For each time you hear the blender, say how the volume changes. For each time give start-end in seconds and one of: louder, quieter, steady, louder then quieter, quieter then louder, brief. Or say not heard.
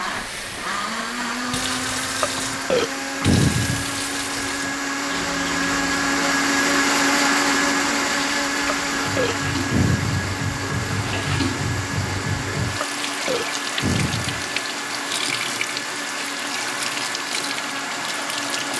0.0-18.7 louder then quieter.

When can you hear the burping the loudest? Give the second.
3 s.